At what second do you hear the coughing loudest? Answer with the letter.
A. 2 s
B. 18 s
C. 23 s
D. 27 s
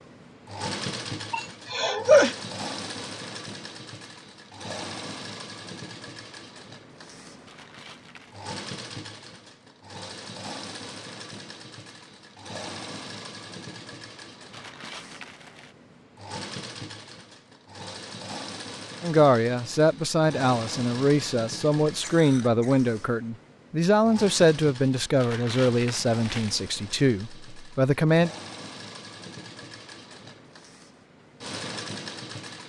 A.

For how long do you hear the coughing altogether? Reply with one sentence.
You can hear the coughing for 2 seconds altogether.